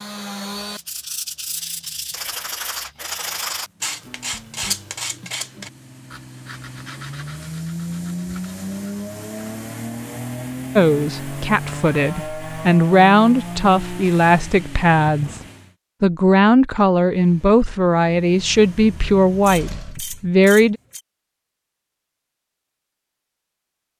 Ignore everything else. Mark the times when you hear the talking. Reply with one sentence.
The talking can be heard from 10.8 to 20.8 s.